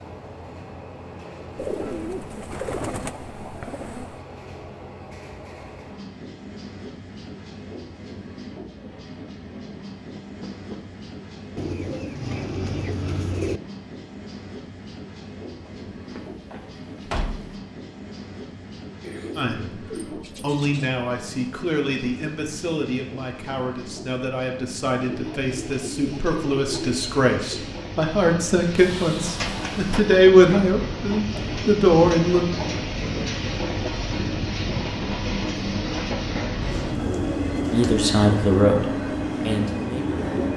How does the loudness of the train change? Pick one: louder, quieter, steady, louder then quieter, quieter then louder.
louder.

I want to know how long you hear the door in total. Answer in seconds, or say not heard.
4 s.